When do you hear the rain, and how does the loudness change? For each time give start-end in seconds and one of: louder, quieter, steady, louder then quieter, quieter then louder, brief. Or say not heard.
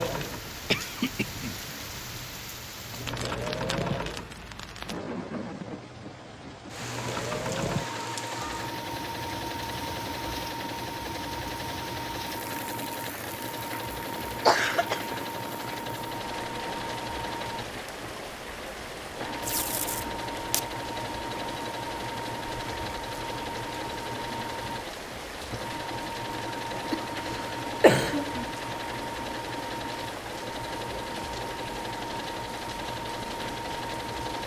0.0-34.4 steady.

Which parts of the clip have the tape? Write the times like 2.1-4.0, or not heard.
19.4-20.7.